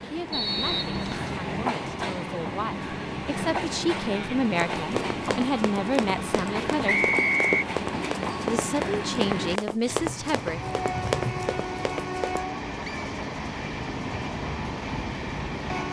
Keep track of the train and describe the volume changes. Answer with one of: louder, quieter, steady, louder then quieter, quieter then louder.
steady.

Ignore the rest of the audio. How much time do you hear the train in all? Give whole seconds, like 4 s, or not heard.
16 s.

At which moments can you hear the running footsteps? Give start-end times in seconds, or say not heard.
4.5-12.4.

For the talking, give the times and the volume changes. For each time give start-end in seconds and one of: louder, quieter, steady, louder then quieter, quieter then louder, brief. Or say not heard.
0.0-7.0 louder
8.4-10.6 brief.